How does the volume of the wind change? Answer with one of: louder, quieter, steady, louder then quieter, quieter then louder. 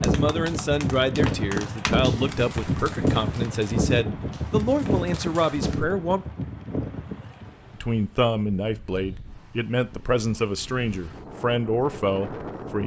quieter then louder.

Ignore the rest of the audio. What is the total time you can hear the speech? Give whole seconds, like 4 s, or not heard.
11 s.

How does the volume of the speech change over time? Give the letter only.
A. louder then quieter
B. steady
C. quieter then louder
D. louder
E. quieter
B.